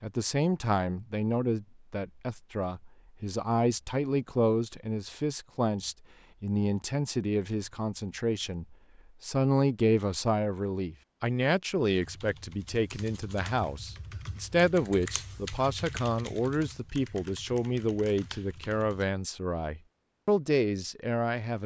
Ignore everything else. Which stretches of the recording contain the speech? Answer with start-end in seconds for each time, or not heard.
0.0-21.6.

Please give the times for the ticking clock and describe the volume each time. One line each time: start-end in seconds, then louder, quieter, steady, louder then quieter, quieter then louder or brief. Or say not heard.
not heard.